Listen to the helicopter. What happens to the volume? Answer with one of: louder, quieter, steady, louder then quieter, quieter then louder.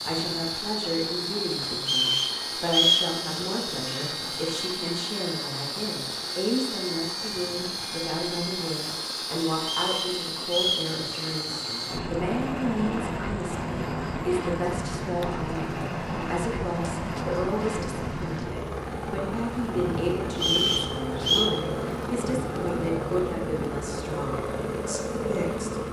steady.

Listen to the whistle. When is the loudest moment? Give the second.
3 s.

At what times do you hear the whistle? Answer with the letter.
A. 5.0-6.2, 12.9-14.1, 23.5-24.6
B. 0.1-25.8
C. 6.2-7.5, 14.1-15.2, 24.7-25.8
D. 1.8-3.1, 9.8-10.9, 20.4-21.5
D.